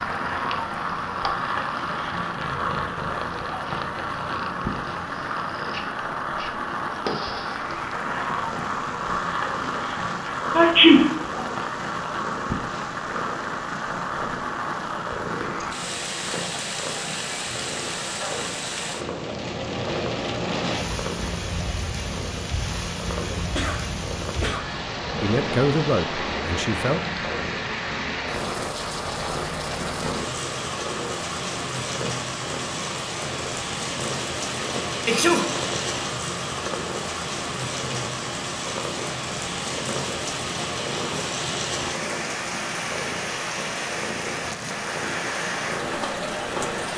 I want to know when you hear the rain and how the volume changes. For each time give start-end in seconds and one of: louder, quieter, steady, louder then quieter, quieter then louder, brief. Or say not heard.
0.0-46.9 steady.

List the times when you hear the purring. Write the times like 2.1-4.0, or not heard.
0.0-46.9.